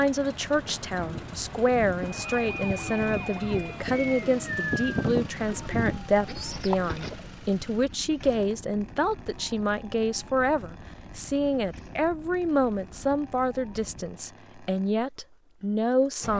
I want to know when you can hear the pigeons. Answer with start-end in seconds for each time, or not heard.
0.9-7.2.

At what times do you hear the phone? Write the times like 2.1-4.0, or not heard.
not heard.